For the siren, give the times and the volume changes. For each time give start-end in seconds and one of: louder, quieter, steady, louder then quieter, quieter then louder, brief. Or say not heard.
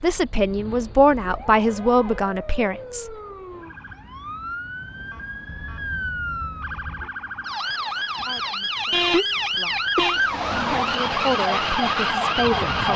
0.0-12.9 louder.